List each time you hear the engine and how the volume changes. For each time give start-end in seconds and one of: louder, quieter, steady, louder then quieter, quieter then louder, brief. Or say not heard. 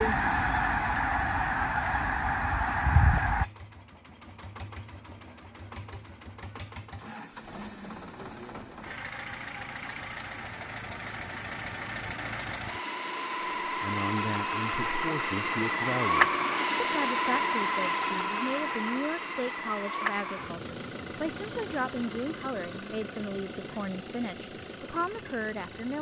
0.0-25.9 louder then quieter.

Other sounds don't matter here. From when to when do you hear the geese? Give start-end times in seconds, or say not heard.
0.0-3.5.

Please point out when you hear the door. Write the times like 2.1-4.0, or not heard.
not heard.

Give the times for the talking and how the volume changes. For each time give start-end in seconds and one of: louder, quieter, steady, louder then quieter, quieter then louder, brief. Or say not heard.
13.7-25.9 steady.